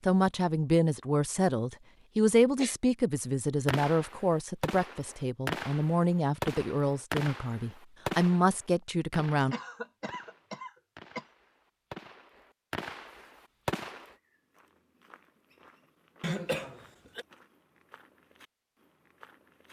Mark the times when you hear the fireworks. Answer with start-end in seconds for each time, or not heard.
3.6-14.2.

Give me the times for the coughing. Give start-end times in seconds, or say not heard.
2.1-2.8, 9.5-11.2, 16.2-17.2.